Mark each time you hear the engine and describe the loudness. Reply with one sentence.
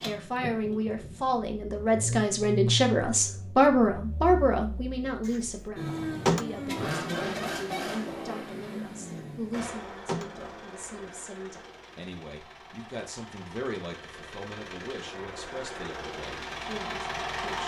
The engine can be heard from 0.0 to 17.6 s, getting quieter then louder.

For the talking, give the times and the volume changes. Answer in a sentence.
You can hear the talking from 0.0 to 17.6 s, getting quieter.